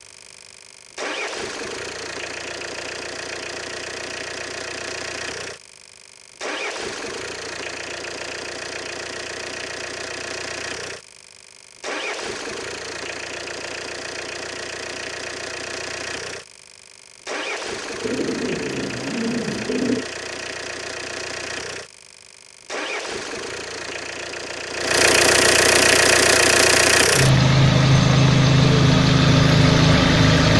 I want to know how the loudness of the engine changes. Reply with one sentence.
The volume of the engine goes up.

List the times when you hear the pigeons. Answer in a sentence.
The pigeons can be heard from 18.0 to 20.1 s.